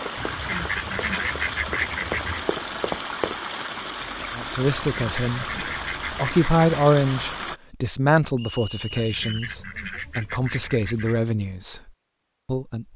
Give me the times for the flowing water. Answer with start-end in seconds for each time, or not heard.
0.0-7.6.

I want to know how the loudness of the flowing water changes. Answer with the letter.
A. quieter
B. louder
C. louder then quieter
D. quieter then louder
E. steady
E.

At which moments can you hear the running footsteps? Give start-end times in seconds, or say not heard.
0.1-3.7.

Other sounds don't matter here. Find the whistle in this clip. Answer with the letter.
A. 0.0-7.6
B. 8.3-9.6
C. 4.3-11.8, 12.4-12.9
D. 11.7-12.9
B.